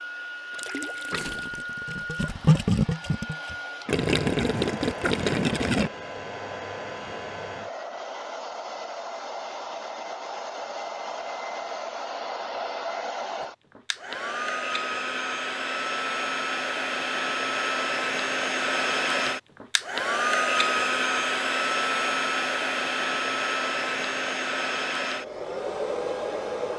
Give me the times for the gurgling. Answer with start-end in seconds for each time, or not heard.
0.5-5.9.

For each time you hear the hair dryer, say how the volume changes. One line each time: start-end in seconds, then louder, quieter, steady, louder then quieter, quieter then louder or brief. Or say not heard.
0.0-26.7 louder.